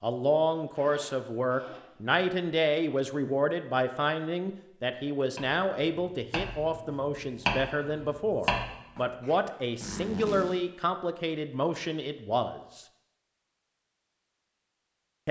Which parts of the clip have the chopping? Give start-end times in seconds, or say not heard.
5.3-9.4.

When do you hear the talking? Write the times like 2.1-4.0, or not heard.
0.0-12.8.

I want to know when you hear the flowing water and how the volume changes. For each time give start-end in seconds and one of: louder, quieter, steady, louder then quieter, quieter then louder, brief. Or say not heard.
not heard.